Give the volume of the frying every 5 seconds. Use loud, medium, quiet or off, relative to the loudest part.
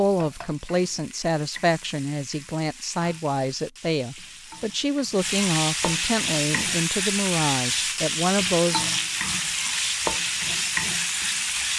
quiet, loud, loud.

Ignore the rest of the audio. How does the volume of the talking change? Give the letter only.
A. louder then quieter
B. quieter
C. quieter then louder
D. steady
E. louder
D.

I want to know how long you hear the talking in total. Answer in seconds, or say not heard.
9 s.